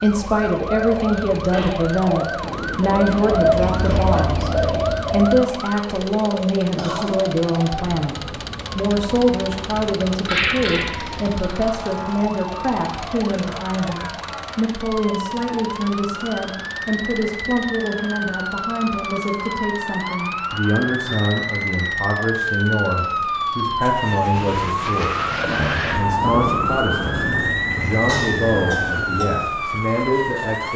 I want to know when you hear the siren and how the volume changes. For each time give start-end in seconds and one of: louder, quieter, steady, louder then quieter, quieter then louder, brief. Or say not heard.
0.0-30.7 louder.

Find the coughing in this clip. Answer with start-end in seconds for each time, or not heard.
6.8-7.2, 10.2-11.1, 28.1-29.2.